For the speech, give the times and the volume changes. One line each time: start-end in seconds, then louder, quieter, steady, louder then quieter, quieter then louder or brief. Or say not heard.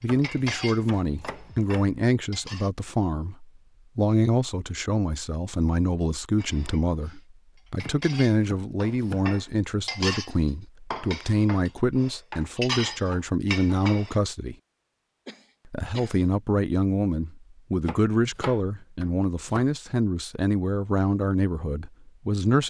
0.0-14.6 steady
15.7-22.6 steady.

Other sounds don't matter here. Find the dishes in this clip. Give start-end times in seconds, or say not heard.
0.2-2.7, 6.3-7.2, 7.8-14.2.